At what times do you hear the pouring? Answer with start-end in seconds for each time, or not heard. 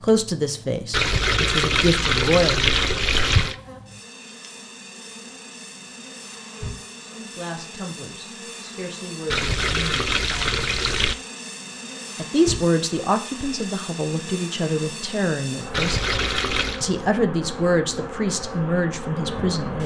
0.9-3.5, 9.3-11.2, 15.7-16.9.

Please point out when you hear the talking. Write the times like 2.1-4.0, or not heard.
0.0-2.7, 7.0-10.7, 12.2-16.1, 16.8-19.8.